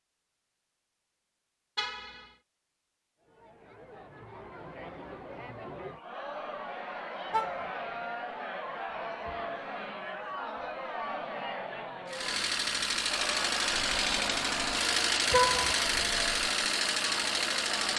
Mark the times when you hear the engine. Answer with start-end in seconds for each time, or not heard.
12.1-17.9.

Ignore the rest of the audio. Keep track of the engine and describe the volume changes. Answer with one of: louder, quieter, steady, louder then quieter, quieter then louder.
steady.